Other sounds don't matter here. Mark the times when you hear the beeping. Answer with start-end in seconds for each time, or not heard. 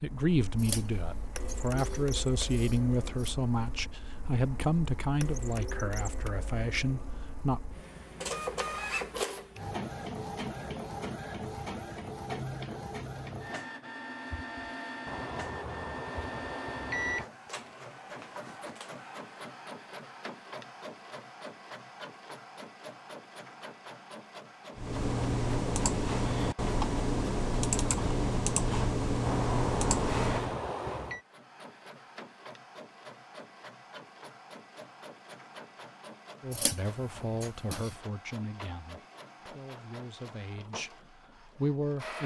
15.1-17.2, 29.2-31.2.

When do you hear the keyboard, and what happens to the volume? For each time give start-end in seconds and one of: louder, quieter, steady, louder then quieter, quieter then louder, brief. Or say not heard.
24.8-30.6 steady.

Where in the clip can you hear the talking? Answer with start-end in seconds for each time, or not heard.
0.0-7.6, 36.4-42.2.